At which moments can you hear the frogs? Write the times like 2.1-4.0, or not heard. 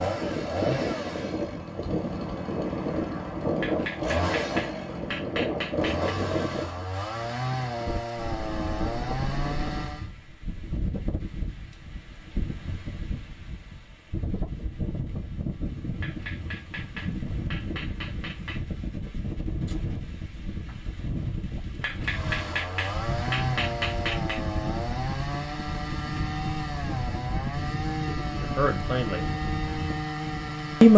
not heard.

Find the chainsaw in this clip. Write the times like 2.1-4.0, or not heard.
0.0-10.1, 22.1-30.9.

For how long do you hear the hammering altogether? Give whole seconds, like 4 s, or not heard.
8 s.